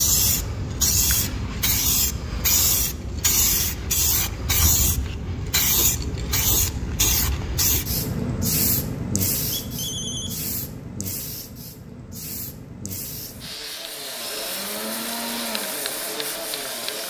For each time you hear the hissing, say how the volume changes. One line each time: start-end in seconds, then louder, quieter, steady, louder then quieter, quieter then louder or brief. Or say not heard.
0.0-17.0 quieter.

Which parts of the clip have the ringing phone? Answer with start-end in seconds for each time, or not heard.
9.5-10.3.